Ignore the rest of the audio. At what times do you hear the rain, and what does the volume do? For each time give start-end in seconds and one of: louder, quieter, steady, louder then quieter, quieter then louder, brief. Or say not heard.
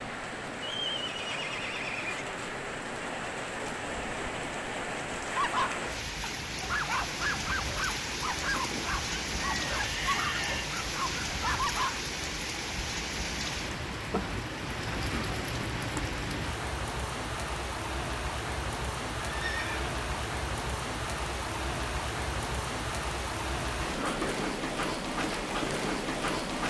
0.0-26.6 steady.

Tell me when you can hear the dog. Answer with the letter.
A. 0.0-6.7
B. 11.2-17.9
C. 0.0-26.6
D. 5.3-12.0
D.